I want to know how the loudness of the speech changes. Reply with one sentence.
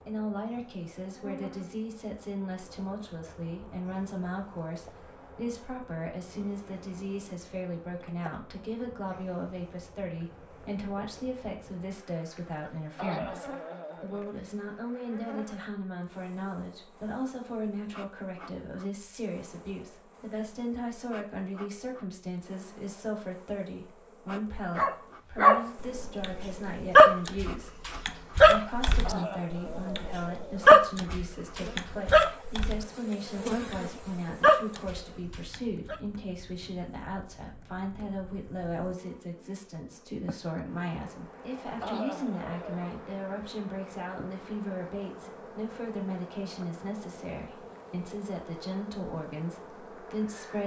The loudness of the speech stays about the same.